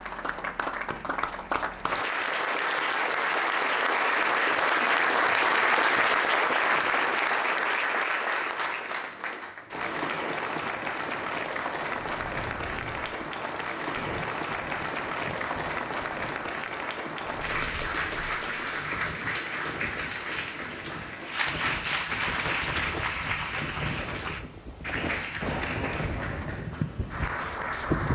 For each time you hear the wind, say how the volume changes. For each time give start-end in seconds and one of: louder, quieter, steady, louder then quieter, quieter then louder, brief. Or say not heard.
11.9-28.1 louder.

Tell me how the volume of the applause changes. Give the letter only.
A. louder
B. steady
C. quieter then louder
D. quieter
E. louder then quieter
D.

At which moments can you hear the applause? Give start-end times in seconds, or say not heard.
0.0-28.1.